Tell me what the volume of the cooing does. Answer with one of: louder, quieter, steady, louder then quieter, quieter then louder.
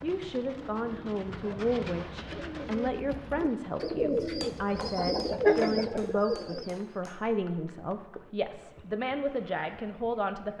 louder.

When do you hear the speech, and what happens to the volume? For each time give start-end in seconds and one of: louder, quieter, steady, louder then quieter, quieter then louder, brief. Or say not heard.
0.0-10.5 steady.